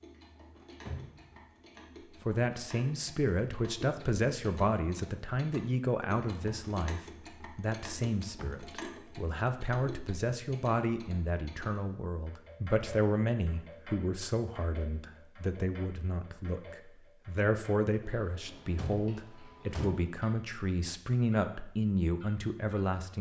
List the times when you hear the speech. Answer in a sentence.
You can hear the speech from 2.2 to 23.1 s.